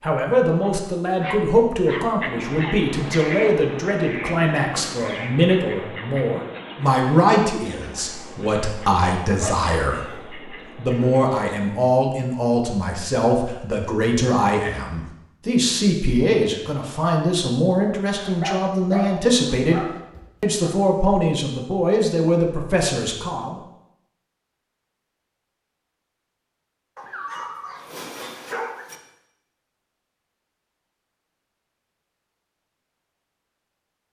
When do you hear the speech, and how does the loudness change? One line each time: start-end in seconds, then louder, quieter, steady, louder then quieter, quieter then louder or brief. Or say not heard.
0.0-23.6 steady.